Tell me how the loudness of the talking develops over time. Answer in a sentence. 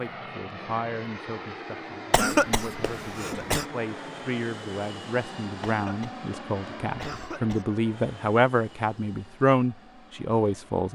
The volume of the talking goes up.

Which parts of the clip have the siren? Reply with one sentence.
The siren can't be heard in this clip.